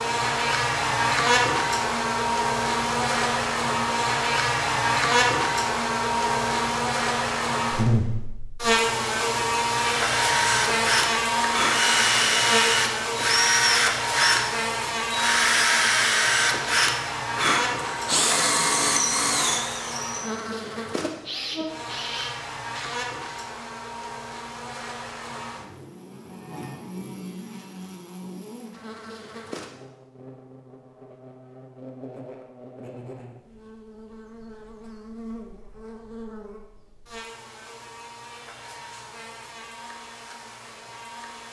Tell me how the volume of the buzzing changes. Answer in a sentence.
The loudness of the buzzing goes down.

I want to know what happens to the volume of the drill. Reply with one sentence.
The volume of the drill goes down.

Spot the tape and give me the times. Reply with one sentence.
You can't hear the tape here.